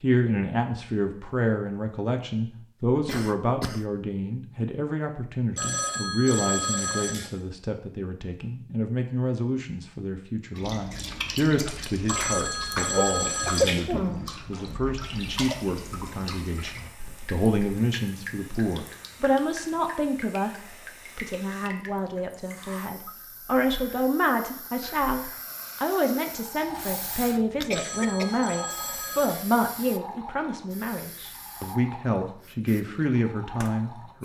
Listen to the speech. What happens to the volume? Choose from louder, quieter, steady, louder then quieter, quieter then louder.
steady.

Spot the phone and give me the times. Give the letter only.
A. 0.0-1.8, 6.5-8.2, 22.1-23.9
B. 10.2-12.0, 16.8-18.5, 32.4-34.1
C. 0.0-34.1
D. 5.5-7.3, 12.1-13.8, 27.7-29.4
D.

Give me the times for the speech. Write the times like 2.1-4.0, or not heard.
0.0-34.1.